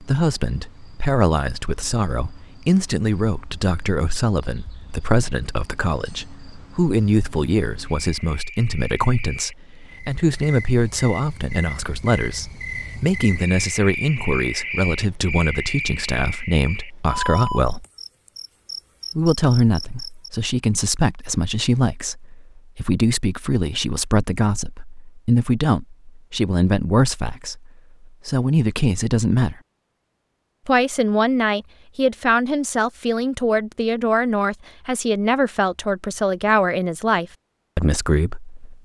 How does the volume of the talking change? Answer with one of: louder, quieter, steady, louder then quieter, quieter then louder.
steady.